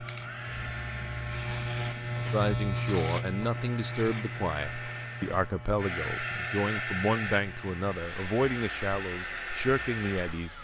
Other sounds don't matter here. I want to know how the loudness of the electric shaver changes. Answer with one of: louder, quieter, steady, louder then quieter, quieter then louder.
quieter.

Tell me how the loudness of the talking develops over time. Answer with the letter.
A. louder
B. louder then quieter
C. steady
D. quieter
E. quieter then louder
C.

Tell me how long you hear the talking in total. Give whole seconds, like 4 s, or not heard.
8 s.